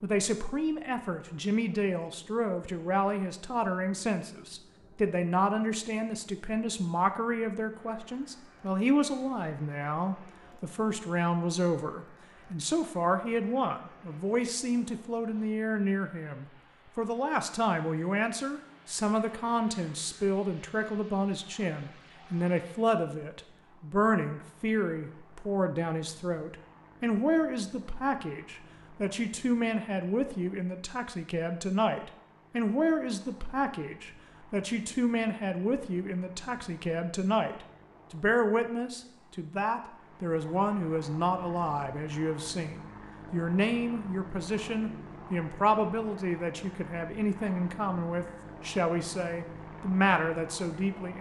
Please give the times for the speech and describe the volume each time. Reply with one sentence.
The speech can be heard from 0.0 to 51.1 s, at a steady volume.